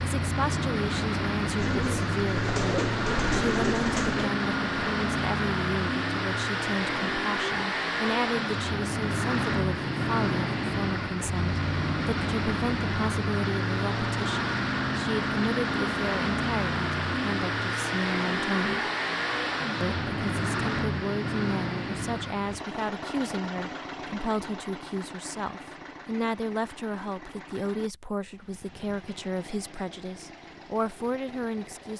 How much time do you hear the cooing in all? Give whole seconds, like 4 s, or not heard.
3 s.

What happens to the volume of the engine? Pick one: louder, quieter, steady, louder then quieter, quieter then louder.
quieter.